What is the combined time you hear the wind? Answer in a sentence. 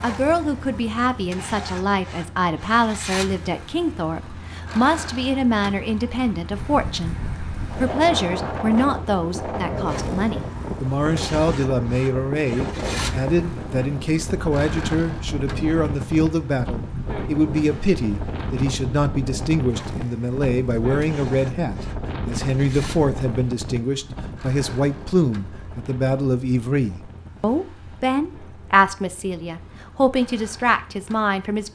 The wind can be heard for 25 seconds in total.